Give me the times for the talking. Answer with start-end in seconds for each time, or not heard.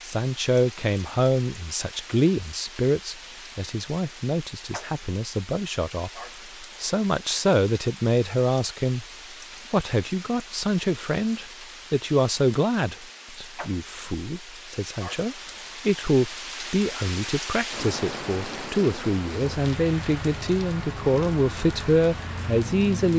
0.0-9.1, 9.7-23.1.